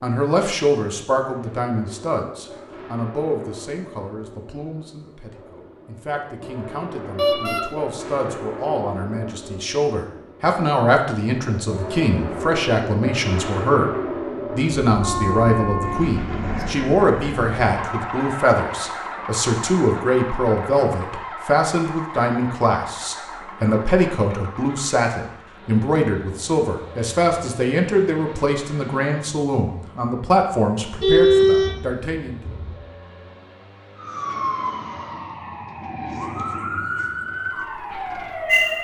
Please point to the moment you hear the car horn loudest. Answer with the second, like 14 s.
31 s.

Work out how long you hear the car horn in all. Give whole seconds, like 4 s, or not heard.
4 s.